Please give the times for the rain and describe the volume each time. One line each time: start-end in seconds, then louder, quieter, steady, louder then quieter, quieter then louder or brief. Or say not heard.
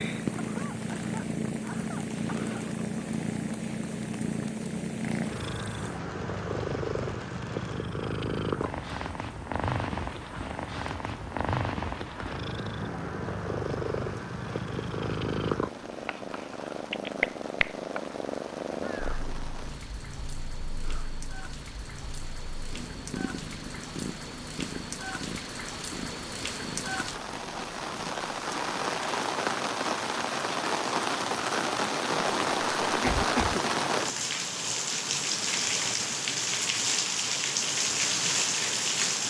0.0-39.2 louder.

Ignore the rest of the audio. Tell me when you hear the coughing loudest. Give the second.
33 s.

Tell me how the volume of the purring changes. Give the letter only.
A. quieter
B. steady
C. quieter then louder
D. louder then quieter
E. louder
A.